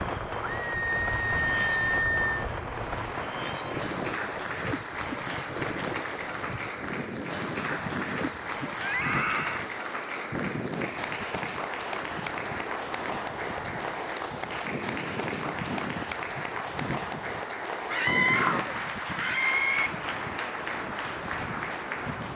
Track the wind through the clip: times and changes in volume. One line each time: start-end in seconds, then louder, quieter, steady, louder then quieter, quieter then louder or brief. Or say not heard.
0.0-22.3 steady.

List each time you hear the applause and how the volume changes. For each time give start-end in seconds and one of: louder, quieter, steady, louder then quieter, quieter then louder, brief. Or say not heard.
0.0-22.3 steady.